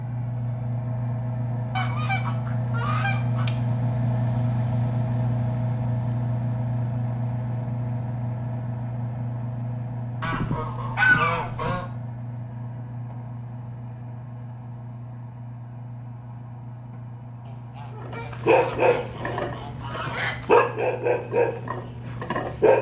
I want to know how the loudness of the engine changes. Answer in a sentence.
The loudness of the engine goes down.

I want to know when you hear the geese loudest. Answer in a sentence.
The volume of the geese peaks at 11 seconds.